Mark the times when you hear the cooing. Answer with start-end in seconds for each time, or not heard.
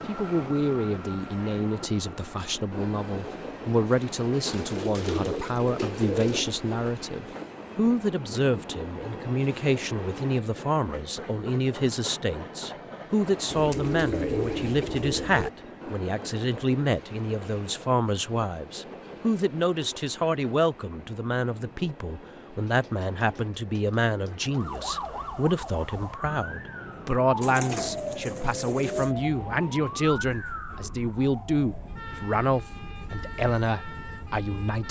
4.5-6.5, 13.5-15.5, 22.6-24.6, 27.4-29.1.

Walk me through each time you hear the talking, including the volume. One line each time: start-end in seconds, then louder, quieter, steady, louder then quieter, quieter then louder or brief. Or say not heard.
0.1-34.8 steady.